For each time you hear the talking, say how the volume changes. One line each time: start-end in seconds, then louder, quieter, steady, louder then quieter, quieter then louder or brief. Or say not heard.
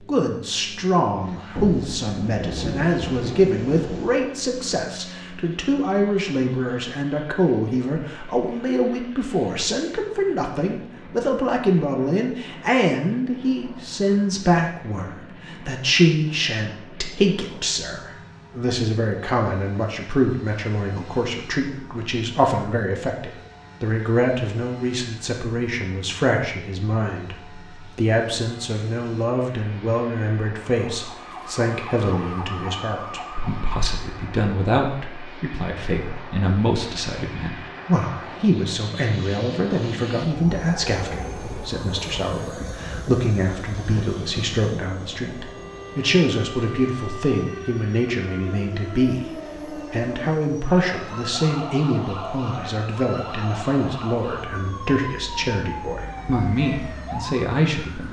0.0-58.0 steady.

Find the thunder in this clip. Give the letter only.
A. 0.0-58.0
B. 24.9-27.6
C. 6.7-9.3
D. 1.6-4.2
D.